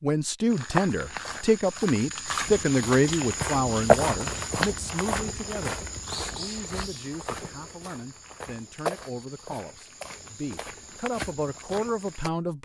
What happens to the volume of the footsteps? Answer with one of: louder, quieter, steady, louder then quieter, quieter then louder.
louder then quieter.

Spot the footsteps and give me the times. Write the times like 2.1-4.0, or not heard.
0.5-12.3.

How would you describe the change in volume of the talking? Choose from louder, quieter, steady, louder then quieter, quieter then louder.
quieter then louder.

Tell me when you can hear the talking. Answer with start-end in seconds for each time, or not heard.
0.0-12.6.